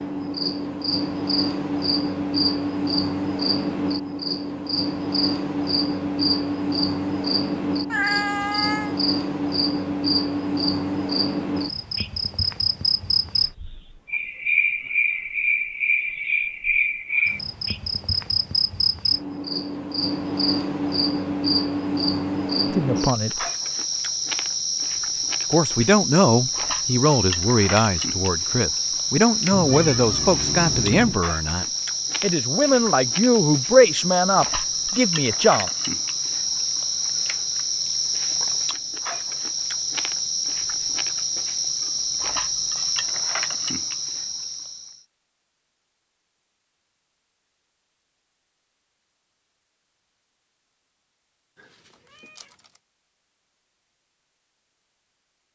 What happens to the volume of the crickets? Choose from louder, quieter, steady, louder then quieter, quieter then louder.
steady.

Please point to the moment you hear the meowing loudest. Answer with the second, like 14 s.
8 s.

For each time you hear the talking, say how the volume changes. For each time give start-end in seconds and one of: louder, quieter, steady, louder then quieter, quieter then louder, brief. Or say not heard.
22.7-23.4 brief
25.5-35.7 steady.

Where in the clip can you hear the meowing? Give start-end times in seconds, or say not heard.
7.9-8.9, 29.5-31.2, 51.5-52.7.